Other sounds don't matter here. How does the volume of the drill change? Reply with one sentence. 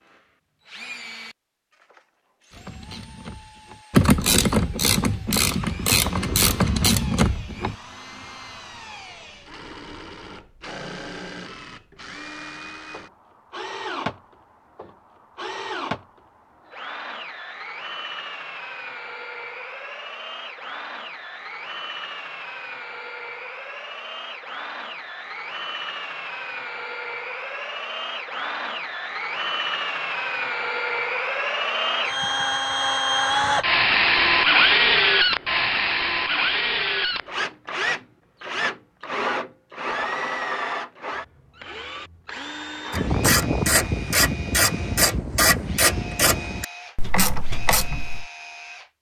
The loudness of the drill goes up, then down.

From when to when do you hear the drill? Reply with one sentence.
You can hear the drill from 0.1 to 48.9 s.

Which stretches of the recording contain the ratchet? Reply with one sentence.
You can hear the ratchet from 2.5 to 7.8 s and from 42.9 to 48.2 s.